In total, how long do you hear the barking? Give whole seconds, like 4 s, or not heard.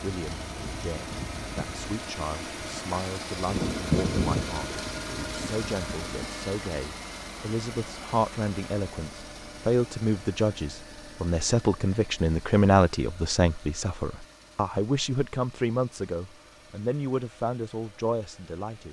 not heard.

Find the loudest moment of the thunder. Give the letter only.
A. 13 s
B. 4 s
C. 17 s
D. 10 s
B.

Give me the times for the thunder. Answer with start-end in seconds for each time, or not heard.
3.5-6.3.